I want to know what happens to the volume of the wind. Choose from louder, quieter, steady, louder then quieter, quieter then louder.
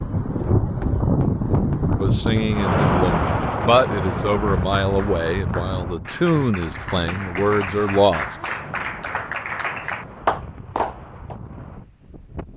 quieter.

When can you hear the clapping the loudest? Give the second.
10 s.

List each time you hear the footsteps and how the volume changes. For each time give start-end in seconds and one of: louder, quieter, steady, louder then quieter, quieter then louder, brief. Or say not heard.
not heard.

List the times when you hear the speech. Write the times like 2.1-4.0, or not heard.
2.0-8.3.